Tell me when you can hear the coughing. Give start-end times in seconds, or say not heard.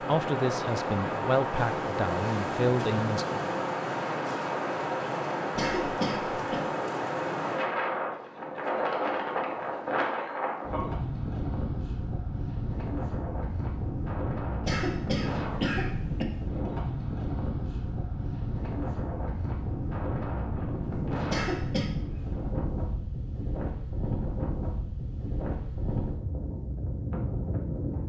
5.5-6.6, 14.6-16.2, 21.2-21.9.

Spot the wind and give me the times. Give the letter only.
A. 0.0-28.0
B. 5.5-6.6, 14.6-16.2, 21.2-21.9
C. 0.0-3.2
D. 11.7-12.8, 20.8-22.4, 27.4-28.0
A.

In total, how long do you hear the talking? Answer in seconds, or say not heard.
3 s.